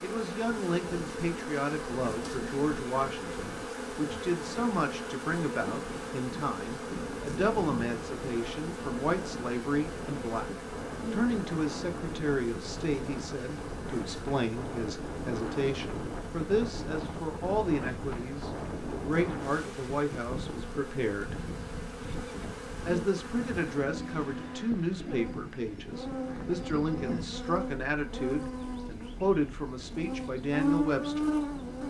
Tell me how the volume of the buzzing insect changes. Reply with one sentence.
The loudness of the buzzing insect goes down, then up.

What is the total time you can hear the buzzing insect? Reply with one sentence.
You can hear the buzzing insect for 32 seconds altogether.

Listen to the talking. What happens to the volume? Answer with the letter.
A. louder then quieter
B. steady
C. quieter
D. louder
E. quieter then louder
B.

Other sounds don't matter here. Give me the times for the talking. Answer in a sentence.
You can hear the talking from 0.0 to 10.5 s, from 11.1 to 21.4 s and from 22.9 to 31.3 s.